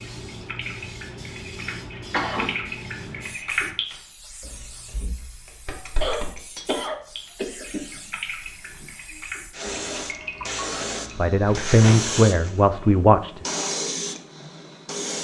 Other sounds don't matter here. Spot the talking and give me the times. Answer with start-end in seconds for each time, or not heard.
11.2-13.5.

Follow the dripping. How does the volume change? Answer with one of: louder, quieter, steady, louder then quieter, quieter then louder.
louder then quieter.